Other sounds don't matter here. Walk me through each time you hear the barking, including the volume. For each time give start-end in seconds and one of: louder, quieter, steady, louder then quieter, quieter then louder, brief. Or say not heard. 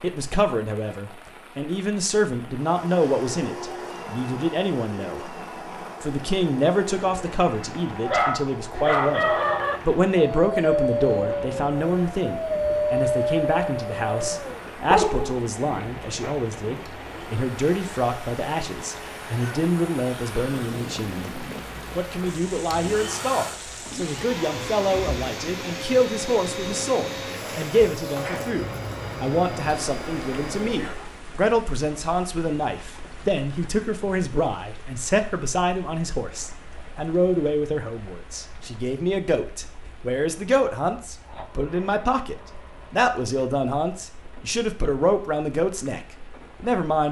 8.0-16.4 steady.